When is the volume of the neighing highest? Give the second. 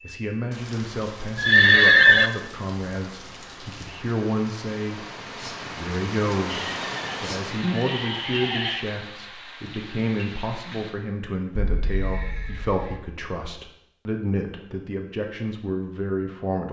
2 s.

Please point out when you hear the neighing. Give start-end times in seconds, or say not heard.
1.4-2.3, 6.5-8.8, 11.6-13.0.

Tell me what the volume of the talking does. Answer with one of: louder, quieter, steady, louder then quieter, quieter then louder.
steady.